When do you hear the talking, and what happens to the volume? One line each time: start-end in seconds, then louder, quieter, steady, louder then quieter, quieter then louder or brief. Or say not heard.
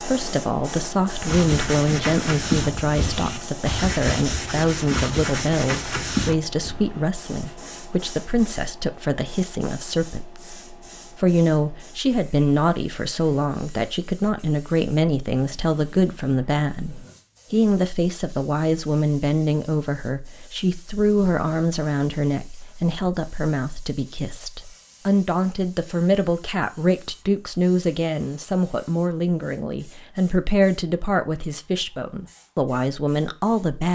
0.0-33.8 steady.